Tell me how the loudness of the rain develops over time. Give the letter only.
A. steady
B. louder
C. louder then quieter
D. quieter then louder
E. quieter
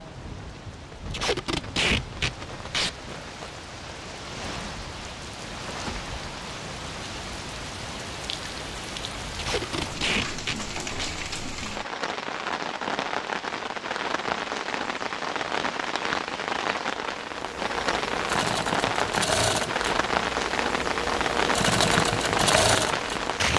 B.